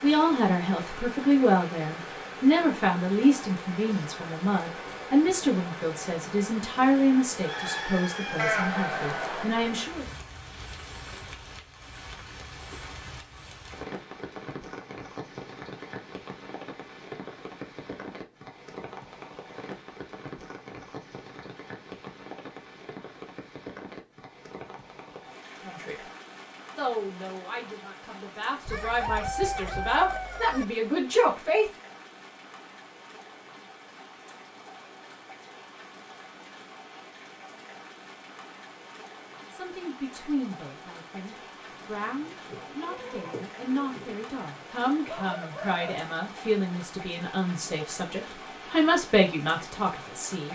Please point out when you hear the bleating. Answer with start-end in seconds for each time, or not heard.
8.3-9.9, 42.3-44.2.